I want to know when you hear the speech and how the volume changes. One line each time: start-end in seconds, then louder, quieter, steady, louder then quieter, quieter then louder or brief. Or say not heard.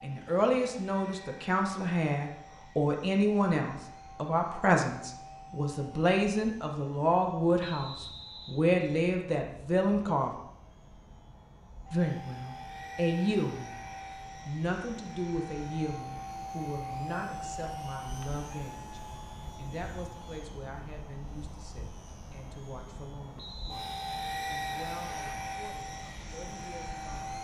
0.0-10.3 steady
11.9-13.8 brief
14.4-27.3 quieter.